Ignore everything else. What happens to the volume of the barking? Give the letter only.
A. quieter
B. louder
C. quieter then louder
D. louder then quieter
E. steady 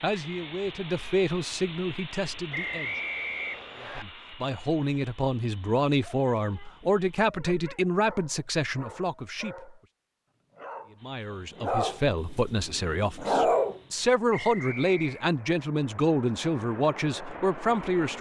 B.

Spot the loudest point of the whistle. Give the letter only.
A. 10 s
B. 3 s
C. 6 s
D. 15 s
B.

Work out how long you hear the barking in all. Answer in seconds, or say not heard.
7 s.